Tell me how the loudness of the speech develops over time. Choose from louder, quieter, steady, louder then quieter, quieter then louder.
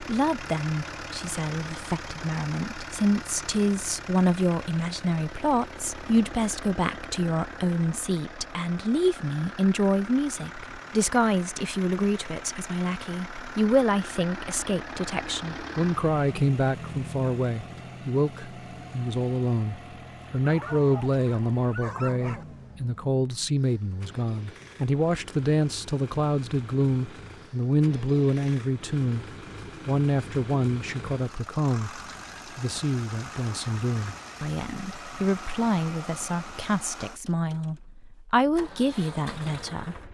steady.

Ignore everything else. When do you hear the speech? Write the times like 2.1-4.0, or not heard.
0.0-40.0.